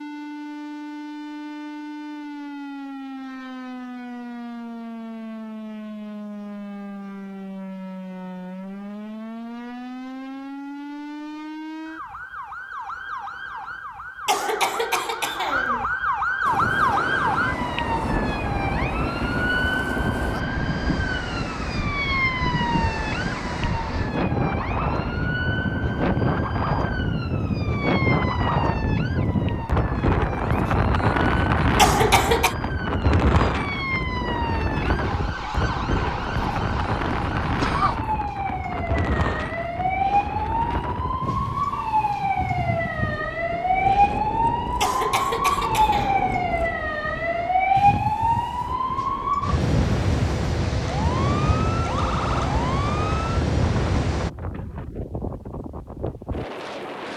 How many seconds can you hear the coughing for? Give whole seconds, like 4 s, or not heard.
4 s.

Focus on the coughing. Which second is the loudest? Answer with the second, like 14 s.
32 s.